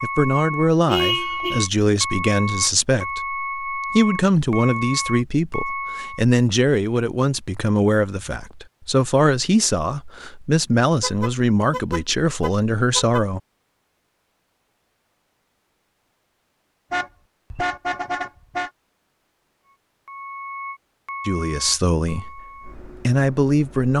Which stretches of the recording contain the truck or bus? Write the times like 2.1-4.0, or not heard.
0.0-6.2, 19.6-23.9.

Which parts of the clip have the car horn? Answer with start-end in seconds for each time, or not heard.
0.8-1.6, 11.0-13.2, 16.9-18.7.